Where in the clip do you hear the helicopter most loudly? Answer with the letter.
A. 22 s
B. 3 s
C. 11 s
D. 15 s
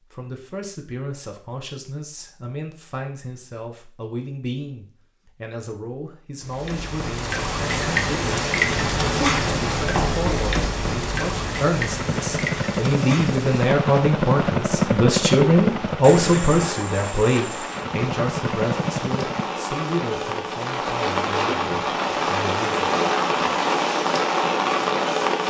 D.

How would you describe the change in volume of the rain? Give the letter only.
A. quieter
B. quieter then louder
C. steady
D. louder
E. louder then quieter
B.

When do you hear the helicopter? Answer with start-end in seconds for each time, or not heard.
8.7-19.4.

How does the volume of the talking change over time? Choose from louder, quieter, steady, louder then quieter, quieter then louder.
louder then quieter.